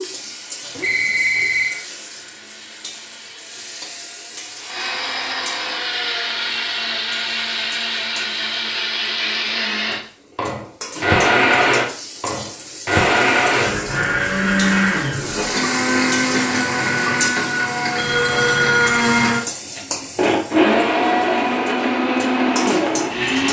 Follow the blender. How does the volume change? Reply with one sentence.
The volume of the blender goes up.